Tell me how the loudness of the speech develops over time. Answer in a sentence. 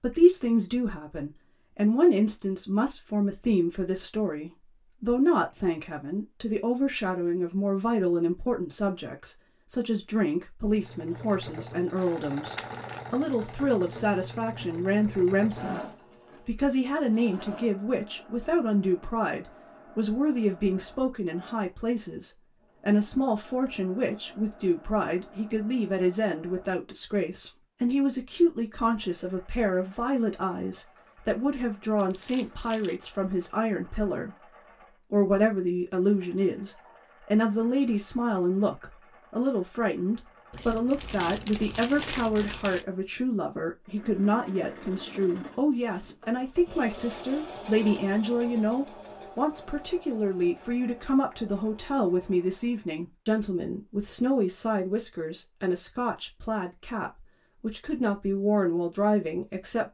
The volume of the speech stays about the same.